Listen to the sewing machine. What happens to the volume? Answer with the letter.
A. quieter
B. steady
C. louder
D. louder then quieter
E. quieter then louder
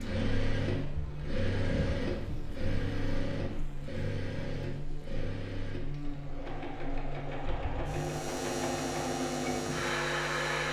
E.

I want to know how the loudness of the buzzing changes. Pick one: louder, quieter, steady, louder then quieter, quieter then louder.
louder.